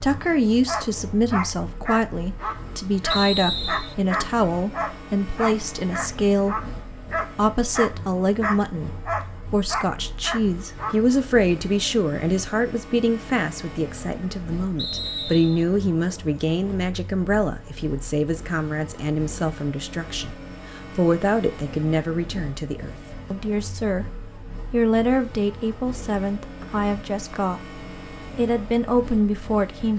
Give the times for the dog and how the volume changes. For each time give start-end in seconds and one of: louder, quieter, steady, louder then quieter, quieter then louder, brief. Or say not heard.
0.1-11.1 steady.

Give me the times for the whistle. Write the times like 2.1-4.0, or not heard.
3.1-4.0, 14.8-15.7, 26.6-27.4.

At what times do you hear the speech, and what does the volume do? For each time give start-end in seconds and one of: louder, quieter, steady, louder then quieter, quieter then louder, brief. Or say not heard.
0.0-29.9 steady.